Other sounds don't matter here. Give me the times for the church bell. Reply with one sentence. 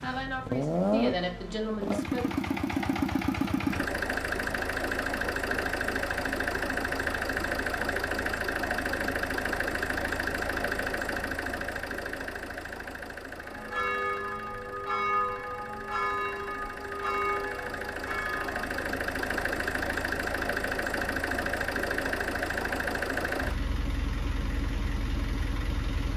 The church bell can be heard from 13.3 to 18.9 s.